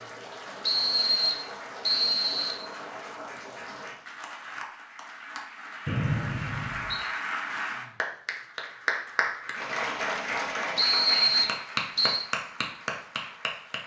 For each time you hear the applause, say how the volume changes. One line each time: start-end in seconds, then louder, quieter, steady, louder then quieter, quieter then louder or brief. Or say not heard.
0.0-13.8 louder.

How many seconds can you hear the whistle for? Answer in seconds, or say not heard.
5 s.